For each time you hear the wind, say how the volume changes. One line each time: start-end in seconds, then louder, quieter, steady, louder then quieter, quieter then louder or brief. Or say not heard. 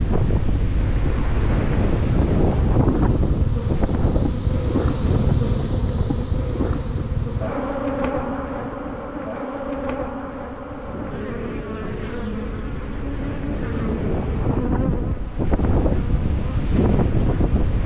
0.0-17.8 quieter then louder.